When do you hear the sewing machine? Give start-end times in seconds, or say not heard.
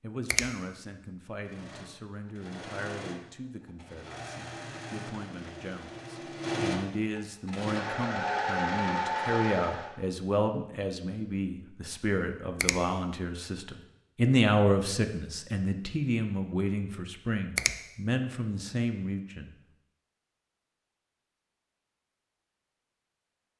1.4-9.9.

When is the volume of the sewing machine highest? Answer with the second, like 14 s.
9 s.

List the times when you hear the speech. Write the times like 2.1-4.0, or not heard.
0.0-19.5.